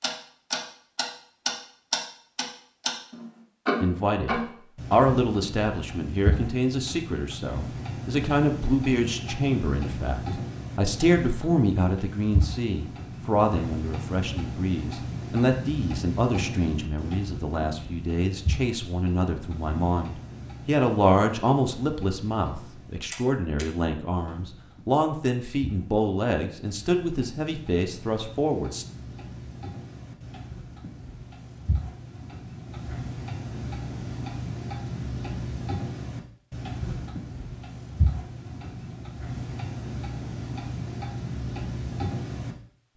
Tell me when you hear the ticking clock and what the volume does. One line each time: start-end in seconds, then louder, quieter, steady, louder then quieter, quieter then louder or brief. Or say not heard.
0.0-42.5 quieter then louder.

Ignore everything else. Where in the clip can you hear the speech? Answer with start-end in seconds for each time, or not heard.
3.8-28.9.